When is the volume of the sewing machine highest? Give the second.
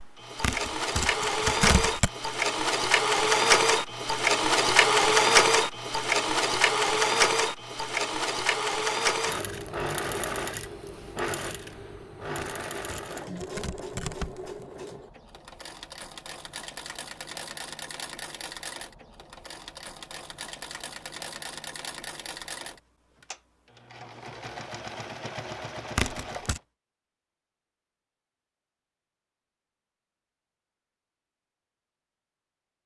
5 s.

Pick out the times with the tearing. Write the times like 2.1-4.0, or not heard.
0.4-2.1, 12.3-14.7, 25.9-26.6.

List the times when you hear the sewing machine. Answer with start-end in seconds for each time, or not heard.
0.0-26.6.